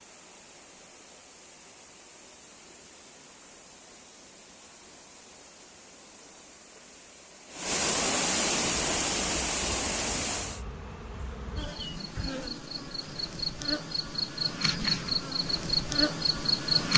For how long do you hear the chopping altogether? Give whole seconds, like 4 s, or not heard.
not heard.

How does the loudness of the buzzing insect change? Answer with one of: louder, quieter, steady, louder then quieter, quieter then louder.
louder.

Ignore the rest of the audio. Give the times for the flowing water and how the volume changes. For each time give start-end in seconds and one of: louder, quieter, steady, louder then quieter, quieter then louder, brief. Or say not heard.
0.0-10.7 louder.